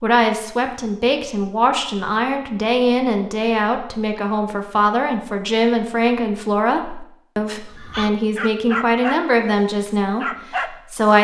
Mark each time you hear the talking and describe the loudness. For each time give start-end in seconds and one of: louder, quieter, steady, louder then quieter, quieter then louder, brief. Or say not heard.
0.0-11.2 steady.